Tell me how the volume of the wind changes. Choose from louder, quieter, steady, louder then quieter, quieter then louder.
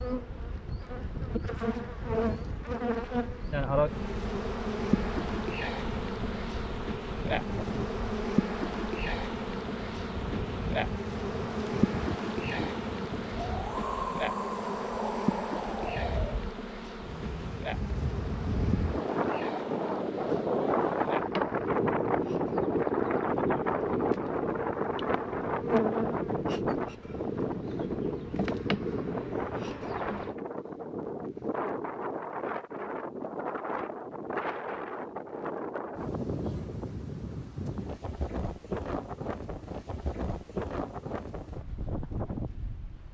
louder then quieter.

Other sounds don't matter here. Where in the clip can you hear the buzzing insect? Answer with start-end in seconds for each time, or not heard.
0.0-30.4.